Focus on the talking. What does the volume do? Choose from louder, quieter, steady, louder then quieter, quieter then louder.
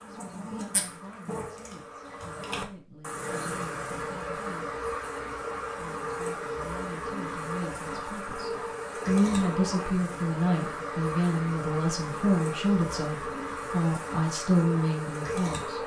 louder.